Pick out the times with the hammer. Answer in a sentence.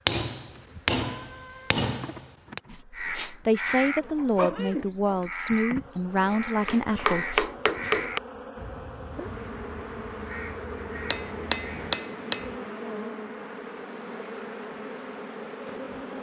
You can hear the hammer from 0.1 to 2.6 s, from 6.2 to 8.2 s and from 11.1 to 12.6 s.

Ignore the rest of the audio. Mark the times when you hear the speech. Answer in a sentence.
You can hear the speech from 2.6 to 7.3 s.